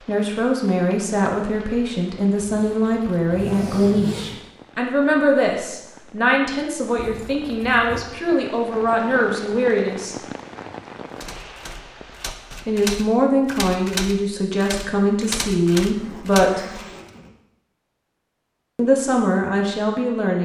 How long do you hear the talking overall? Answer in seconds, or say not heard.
16 s.